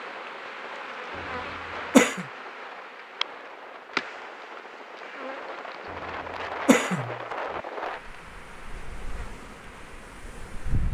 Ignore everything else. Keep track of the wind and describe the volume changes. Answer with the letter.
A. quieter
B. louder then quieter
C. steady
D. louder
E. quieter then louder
B.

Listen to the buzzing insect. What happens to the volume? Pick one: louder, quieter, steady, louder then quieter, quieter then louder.
quieter.